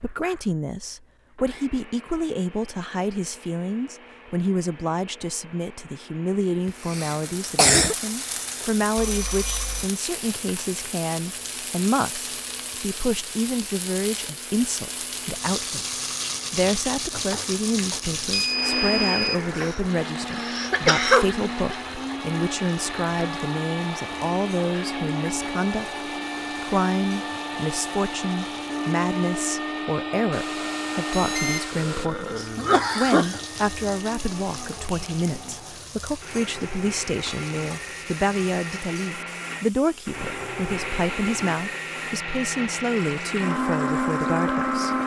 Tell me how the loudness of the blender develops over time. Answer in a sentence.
The loudness of the blender goes up.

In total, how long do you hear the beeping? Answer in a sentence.
The beeping can be heard for 4 seconds in total.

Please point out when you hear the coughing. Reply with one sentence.
The coughing can be heard from 6.7 to 8.0 s, from 19.5 to 21.8 s and from 31.7 to 33.4 s.